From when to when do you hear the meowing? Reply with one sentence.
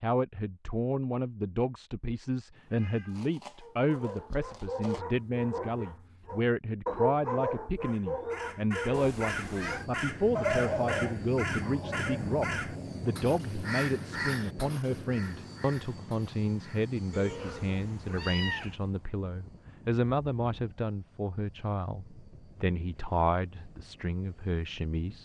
The meowing can be heard from 2.5 to 5.0 s, from 8.9 to 9.9 s and from 17.1 to 18.8 s.